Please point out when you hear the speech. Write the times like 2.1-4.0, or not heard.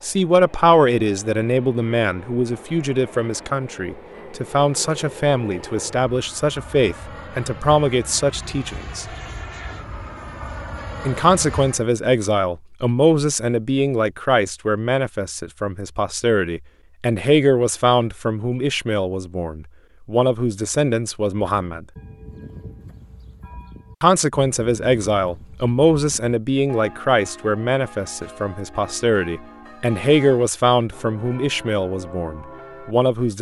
0.0-9.1, 11.1-21.9, 24.0-33.3.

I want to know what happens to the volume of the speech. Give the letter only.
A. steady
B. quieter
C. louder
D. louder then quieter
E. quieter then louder
A.